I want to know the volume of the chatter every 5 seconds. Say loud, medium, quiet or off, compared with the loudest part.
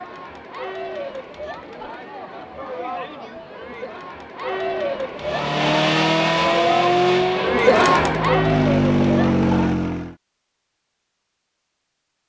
medium, loud, off.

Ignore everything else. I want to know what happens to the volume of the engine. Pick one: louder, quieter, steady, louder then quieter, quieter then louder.
quieter then louder.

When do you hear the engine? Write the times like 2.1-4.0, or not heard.
5.2-10.2.